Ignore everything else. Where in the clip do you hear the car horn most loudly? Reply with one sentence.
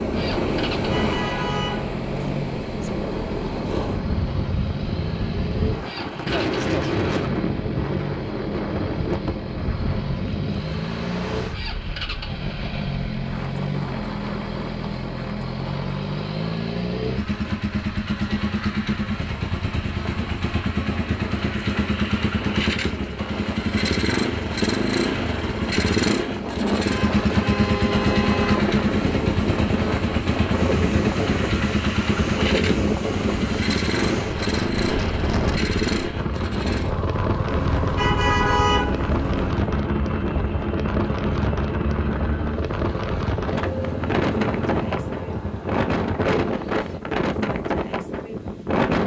The volume of the car horn peaks at 39 seconds.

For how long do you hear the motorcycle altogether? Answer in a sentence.
You can hear the motorcycle for 47 seconds altogether.